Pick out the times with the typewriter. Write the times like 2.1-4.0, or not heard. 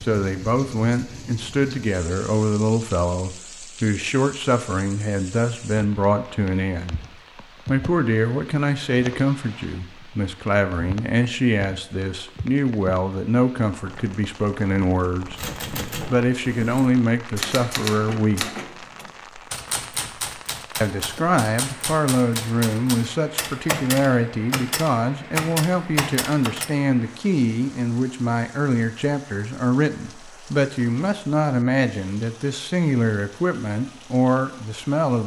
15.3-26.7.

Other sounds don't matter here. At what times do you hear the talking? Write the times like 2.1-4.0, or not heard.
0.0-7.0, 7.7-15.4, 16.1-18.4, 20.8-35.2.